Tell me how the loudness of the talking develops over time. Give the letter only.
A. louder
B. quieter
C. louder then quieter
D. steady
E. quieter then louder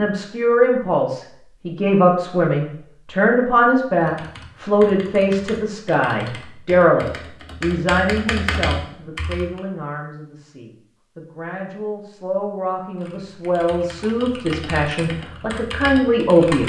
E.